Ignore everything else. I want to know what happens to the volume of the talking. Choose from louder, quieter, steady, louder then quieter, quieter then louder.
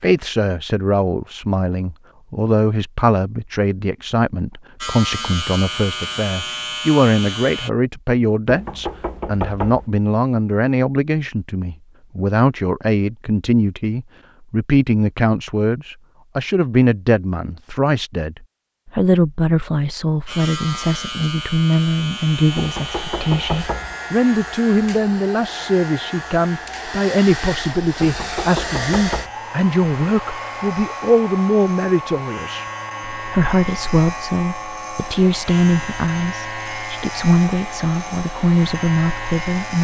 steady.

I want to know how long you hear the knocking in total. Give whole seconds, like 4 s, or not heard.
4 s.